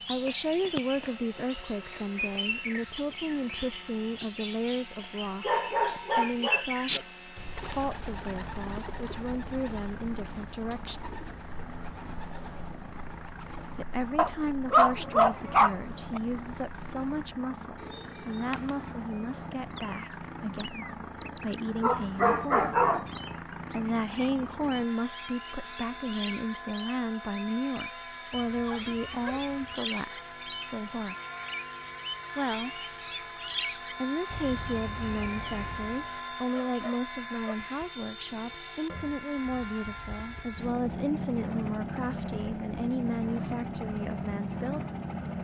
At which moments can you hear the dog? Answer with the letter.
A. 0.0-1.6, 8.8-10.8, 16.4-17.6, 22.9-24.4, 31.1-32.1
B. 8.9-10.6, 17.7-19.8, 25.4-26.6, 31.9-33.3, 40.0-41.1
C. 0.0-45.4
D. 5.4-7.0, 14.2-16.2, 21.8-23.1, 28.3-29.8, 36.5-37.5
D.